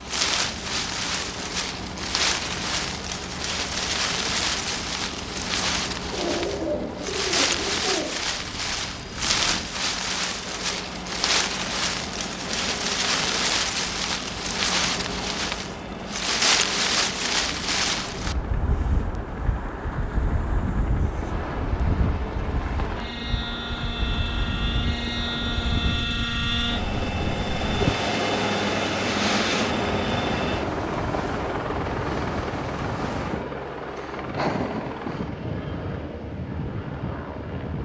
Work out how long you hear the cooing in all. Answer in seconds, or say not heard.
2 s.